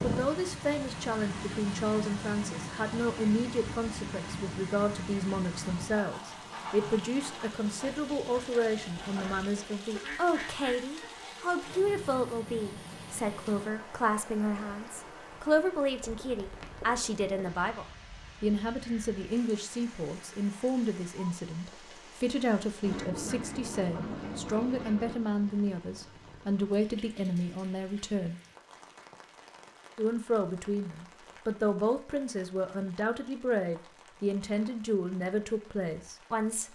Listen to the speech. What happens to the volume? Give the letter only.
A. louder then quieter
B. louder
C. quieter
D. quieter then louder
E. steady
E.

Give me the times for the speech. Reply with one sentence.
The speech can be heard from 0.0 to 28.4 s and from 29.9 to 36.7 s.